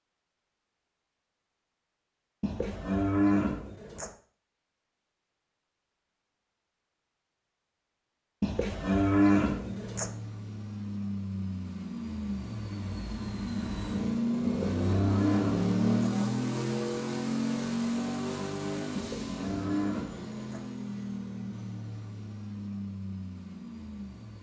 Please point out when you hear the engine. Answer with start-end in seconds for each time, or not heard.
9.4-24.3.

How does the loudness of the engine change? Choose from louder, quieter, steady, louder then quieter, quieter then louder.
louder then quieter.